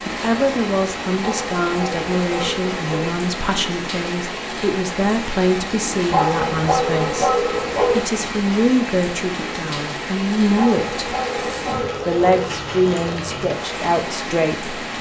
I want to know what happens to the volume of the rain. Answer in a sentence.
The loudness of the rain stays about the same.